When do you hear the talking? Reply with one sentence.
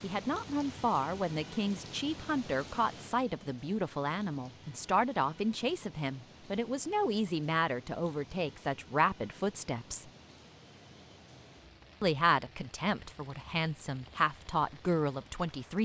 You can hear the talking from 0.0 to 10.1 s and from 12.0 to 15.7 s.